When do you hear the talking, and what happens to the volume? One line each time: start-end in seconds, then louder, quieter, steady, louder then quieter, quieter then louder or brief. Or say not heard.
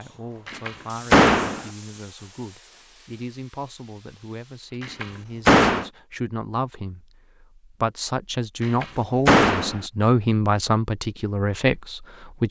0.0-12.4 louder.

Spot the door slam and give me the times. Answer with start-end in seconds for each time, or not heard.
0.5-1.6, 4.8-5.8, 8.6-9.8.